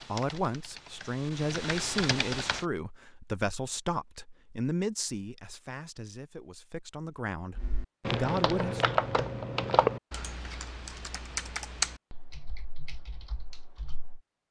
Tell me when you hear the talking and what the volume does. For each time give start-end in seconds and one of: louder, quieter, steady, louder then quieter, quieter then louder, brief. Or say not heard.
0.1-8.8 quieter then louder.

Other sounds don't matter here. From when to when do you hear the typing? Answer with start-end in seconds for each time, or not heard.
0.0-2.6, 7.5-14.2.